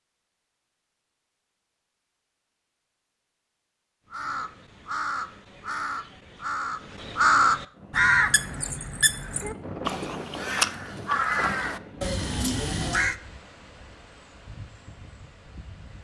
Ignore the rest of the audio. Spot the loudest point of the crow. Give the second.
7 s.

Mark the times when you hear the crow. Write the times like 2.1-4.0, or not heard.
4.1-13.2.